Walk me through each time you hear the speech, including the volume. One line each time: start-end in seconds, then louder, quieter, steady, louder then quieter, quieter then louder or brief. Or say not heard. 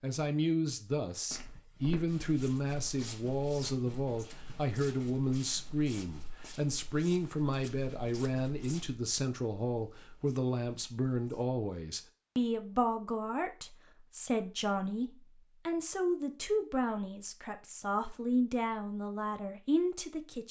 0.0-20.4 steady.